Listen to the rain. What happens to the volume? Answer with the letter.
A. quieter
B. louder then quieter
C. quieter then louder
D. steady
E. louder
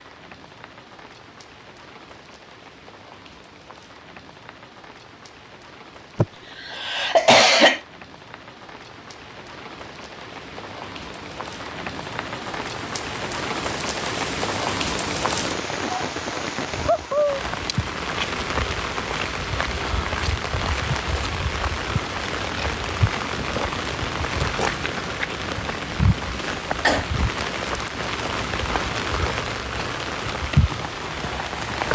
E.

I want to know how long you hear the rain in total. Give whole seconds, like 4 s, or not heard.
32 s.